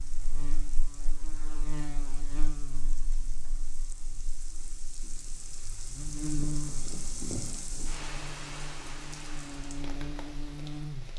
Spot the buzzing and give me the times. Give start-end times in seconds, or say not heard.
0.0-11.1.